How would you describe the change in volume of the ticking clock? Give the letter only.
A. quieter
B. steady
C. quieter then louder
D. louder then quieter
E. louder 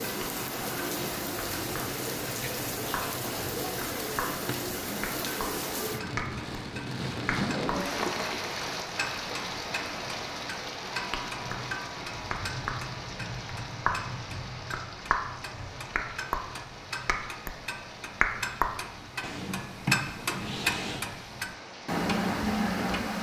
E.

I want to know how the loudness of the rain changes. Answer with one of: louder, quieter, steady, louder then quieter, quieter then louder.
quieter.